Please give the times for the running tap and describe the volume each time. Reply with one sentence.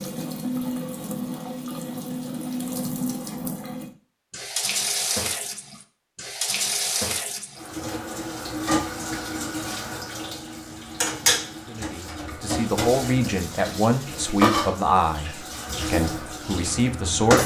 You can hear the running tap from 0.0 to 17.4 s, at a steady volume.